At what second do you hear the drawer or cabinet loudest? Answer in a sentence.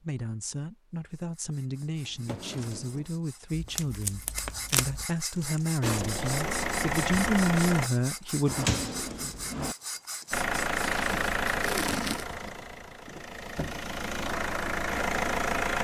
The loudest moment of the drawer or cabinet is at 9 seconds.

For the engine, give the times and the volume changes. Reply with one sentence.
The engine can be heard briefly from 5.8 to 7.9 s; and from 10.3 to 15.7 s, getting quieter then louder.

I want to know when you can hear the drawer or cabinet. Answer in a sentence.
You can hear the drawer or cabinet from 2.0 to 3.1 s and from 8.4 to 9.8 s.